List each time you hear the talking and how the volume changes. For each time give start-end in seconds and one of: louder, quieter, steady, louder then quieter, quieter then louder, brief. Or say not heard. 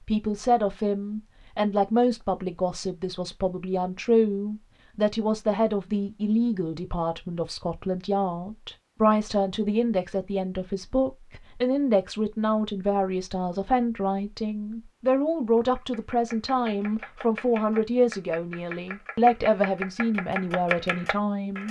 0.1-21.6 steady.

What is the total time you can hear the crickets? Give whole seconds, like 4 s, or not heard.
not heard.